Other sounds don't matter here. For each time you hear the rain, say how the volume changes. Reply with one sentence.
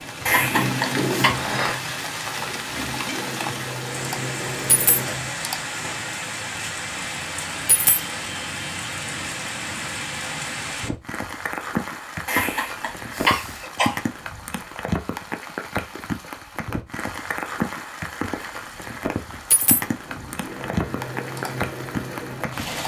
You can hear the rain from 0.0 to 22.8 s, at a steady volume.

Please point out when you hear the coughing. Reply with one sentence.
You can hear the coughing from 0.2 to 1.3 s and from 12.2 to 14.0 s.